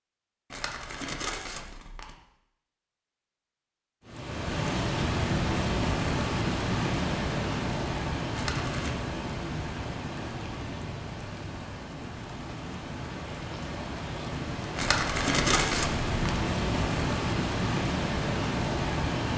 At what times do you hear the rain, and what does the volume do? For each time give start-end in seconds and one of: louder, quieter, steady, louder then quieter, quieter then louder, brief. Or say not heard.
4.0-19.3 quieter then louder.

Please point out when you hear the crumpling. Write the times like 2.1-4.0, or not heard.
0.5-2.1, 8.3-8.9, 14.8-16.1.